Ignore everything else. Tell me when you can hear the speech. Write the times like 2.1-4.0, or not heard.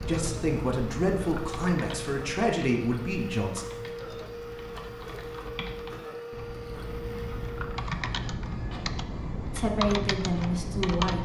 0.0-3.6, 9.4-11.1.